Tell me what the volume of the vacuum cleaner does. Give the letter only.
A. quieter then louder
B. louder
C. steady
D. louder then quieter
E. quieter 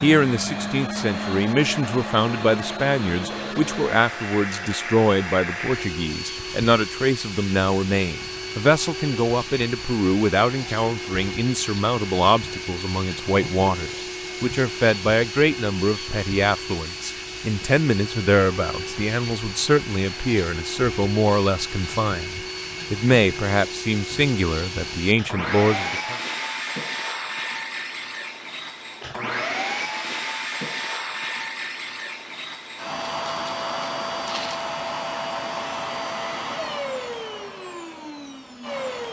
C.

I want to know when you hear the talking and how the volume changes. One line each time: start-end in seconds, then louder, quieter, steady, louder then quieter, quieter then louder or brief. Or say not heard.
0.0-26.1 steady.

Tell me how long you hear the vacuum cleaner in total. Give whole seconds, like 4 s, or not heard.
39 s.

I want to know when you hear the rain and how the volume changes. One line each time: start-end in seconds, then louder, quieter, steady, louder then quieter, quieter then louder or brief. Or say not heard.
not heard.